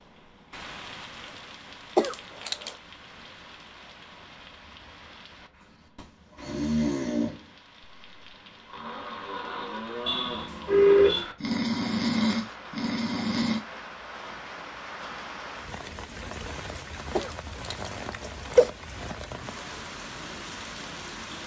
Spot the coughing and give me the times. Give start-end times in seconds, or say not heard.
1.9-2.8, 17.1-18.7.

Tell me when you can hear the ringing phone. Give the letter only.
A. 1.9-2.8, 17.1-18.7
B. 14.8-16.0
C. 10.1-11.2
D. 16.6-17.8
C.